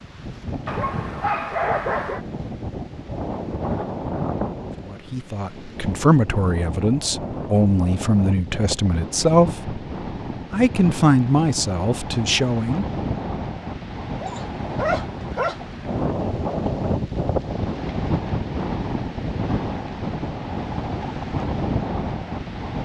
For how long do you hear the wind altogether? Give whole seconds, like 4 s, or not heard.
23 s.